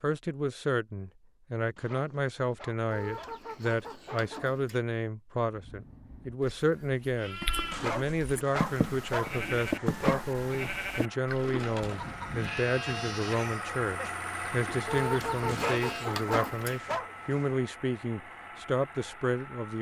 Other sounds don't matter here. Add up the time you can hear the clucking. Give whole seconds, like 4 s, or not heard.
4 s.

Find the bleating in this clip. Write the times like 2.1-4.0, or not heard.
5.5-16.1.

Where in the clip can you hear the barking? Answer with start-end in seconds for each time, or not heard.
1.8-4.3, 7.7-10.2, 15.4-17.4.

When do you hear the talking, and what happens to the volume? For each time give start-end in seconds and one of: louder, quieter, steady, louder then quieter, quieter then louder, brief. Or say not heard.
0.0-19.7 steady.